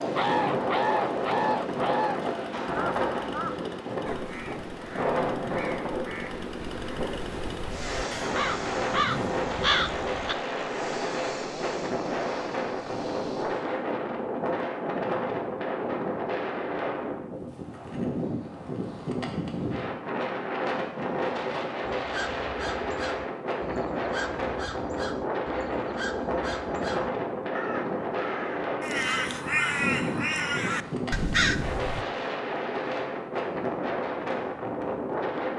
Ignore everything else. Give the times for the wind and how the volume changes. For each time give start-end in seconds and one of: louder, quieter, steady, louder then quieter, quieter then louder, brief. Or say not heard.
0.0-35.5 steady.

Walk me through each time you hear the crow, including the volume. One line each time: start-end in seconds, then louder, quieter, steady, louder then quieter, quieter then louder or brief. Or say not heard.
0.1-10.3 quieter then louder
21.9-32.0 louder.